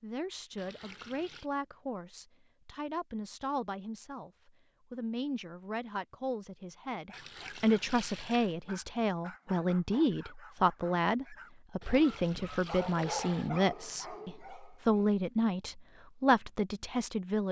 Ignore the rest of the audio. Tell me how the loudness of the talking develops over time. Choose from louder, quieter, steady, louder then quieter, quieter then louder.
louder.